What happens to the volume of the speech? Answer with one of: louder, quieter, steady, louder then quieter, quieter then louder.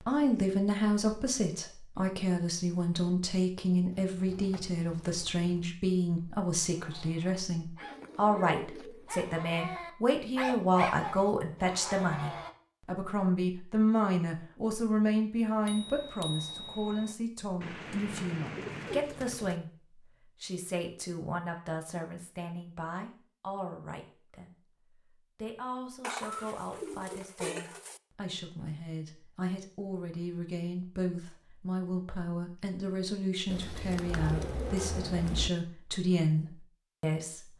quieter then louder.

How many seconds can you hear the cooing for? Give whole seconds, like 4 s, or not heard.
9 s.